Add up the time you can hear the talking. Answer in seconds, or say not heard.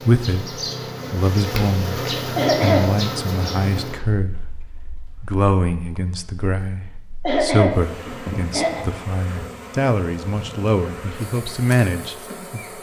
12 s.